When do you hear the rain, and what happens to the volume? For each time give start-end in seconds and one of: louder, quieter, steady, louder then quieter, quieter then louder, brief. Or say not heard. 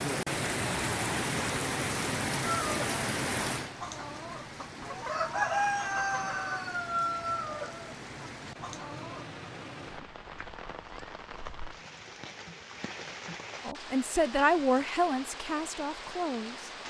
0.0-16.8 quieter.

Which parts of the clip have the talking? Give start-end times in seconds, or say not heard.
13.7-16.7.